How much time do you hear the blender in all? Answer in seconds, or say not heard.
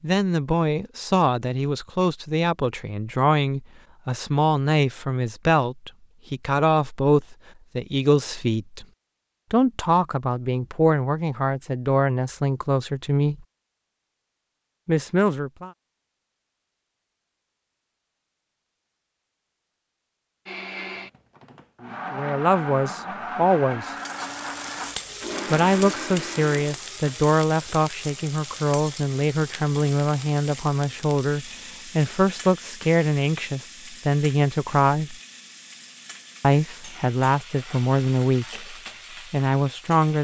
7 s.